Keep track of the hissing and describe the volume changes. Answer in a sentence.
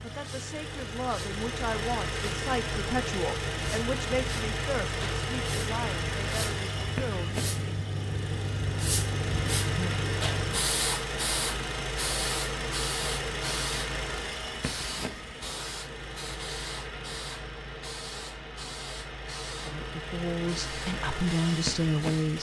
The loudness of the hissing goes up, then down.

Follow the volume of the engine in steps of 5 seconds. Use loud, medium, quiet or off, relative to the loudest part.
loud, loud, loud, medium, loud.